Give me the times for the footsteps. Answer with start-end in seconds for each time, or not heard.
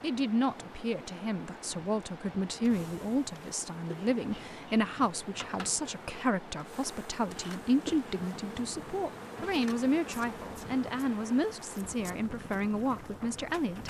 not heard.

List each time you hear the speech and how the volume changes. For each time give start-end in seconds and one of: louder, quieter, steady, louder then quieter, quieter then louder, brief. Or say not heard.
0.0-13.8 steady.